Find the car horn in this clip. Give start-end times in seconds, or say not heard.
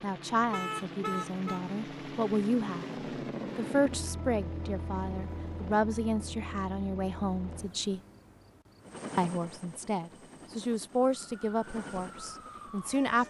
0.4-1.6.